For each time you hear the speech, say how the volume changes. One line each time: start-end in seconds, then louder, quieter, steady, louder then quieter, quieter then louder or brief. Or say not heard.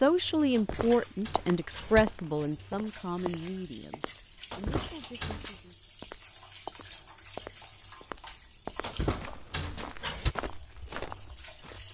0.0-5.8 quieter.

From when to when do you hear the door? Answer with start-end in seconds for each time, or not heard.
0.6-2.0, 4.5-5.6, 8.8-10.3.